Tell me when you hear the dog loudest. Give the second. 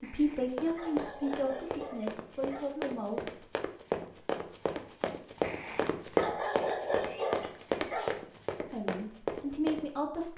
7 s.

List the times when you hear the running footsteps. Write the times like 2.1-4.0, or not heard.
0.3-9.9.